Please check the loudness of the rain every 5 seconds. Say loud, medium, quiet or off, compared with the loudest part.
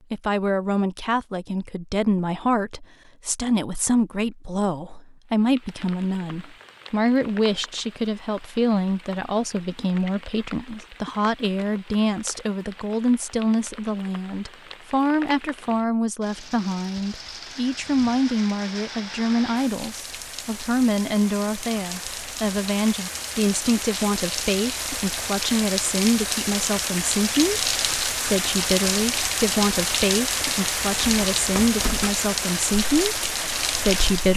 off, quiet, quiet, quiet, medium, loud, loud.